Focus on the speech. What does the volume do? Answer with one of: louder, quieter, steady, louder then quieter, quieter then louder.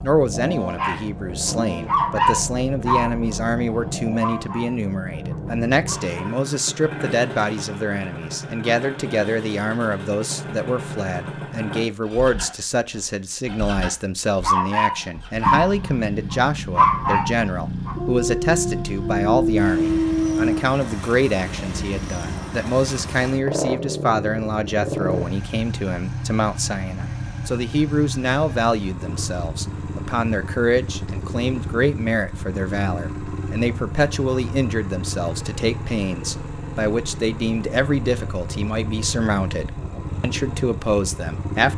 steady.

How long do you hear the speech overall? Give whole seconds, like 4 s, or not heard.
42 s.